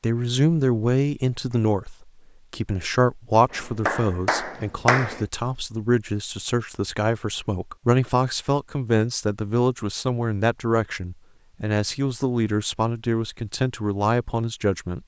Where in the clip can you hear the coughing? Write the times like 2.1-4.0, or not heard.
not heard.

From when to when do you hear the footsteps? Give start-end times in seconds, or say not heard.
not heard.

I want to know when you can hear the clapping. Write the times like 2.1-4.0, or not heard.
3.5-5.2.